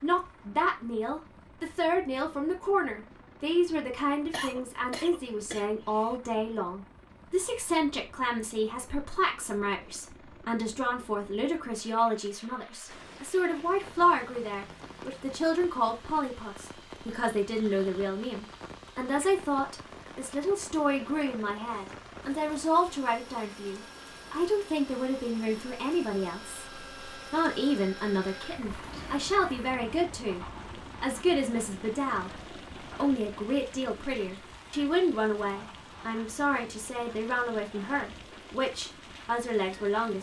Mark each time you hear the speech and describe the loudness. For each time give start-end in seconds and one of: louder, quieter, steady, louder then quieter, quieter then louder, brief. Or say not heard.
0.0-40.1 steady.